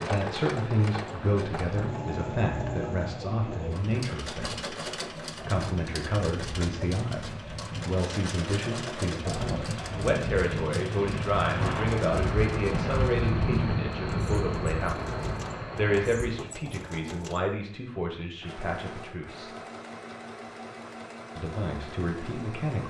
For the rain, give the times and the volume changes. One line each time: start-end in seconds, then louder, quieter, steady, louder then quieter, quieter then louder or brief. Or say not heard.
0.0-16.5 louder.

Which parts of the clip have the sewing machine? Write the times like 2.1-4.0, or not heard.
0.0-22.8.